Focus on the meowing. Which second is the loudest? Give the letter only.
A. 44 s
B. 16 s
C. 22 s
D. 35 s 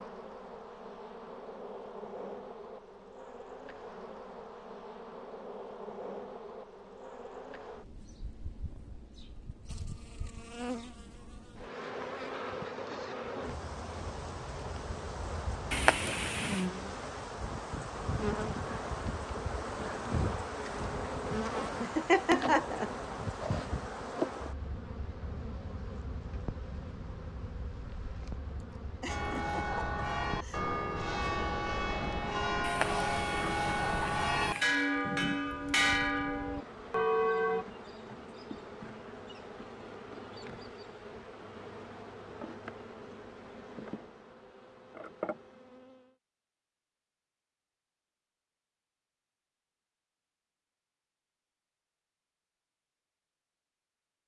B.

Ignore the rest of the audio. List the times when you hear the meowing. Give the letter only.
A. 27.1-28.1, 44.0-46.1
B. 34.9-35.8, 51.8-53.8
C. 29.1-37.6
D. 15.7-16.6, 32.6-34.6
D.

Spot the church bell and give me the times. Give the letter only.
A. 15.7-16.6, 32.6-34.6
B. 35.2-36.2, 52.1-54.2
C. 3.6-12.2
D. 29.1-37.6
D.